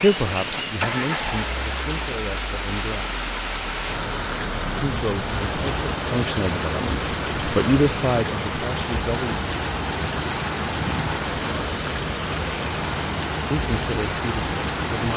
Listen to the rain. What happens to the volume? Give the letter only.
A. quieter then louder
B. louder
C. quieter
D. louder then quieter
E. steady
E.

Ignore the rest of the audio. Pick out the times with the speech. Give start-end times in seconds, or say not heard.
0.0-3.0, 4.6-9.3, 13.5-15.1.